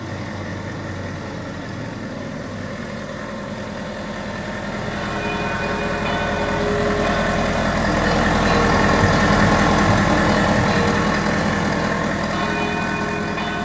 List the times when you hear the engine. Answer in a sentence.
The engine can be heard from 0.0 to 13.6 s.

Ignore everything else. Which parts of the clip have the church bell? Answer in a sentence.
The church bell can be heard from 4.8 to 13.6 s.